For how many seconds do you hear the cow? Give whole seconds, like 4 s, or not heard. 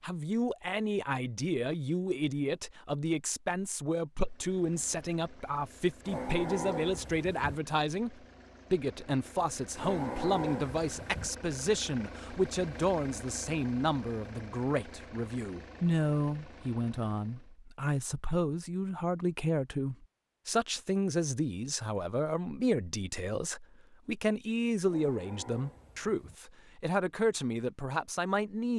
5 s.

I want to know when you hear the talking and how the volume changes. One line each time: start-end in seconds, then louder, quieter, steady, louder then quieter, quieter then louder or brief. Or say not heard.
0.0-28.7 steady.